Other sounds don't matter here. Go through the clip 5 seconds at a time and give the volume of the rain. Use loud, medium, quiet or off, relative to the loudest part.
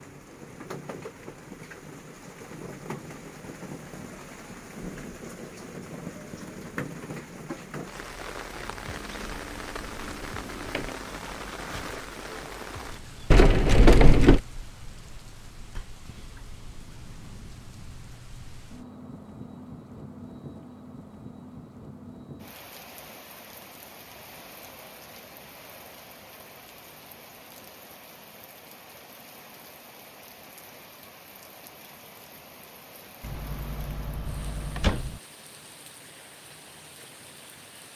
loud, loud, loud, medium, medium, medium, medium, medium.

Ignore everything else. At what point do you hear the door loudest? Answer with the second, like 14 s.
14 s.